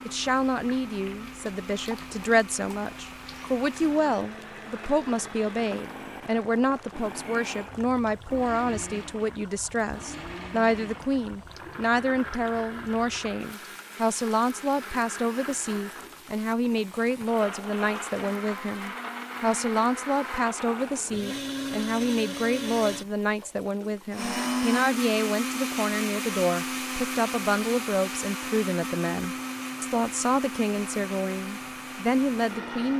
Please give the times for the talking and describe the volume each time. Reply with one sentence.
You can hear the talking from 0.1 to 32.9 s, at a steady volume.